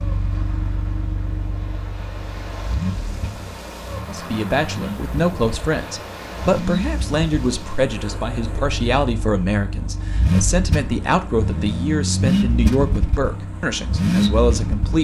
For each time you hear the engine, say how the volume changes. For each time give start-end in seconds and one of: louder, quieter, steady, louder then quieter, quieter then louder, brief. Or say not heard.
0.0-14.9 louder.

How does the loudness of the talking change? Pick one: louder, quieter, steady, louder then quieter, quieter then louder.
steady.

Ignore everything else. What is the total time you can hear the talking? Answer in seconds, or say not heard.
11 s.